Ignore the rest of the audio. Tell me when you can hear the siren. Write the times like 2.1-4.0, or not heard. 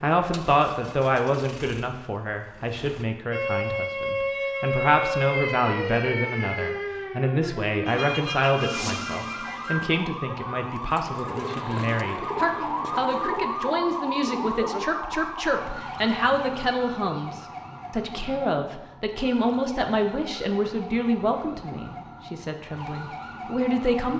3.3-24.1.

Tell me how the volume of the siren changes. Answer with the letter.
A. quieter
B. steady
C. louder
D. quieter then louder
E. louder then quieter
A.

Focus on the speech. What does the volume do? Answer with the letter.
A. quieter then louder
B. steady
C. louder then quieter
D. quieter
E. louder
B.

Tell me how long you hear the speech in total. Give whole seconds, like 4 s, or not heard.
24 s.